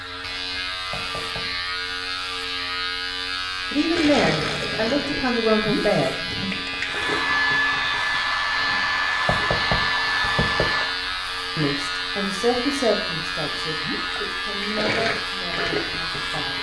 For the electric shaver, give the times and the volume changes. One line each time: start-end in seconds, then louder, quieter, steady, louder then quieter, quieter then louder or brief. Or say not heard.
0.0-16.5 steady.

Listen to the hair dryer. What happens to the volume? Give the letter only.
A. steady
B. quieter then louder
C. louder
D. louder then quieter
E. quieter
E.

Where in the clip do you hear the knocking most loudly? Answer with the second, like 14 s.
10 s.